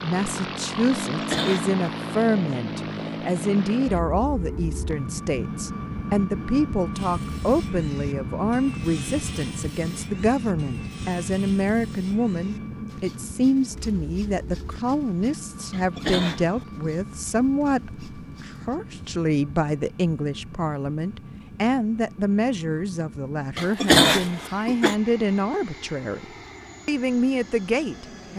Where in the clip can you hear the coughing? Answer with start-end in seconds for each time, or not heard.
1.0-1.8, 15.7-16.9, 23.6-24.9.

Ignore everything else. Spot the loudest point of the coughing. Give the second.
24 s.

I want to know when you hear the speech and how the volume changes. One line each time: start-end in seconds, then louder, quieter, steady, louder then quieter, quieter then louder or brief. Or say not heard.
0.0-26.2 steady
26.9-28.3 brief.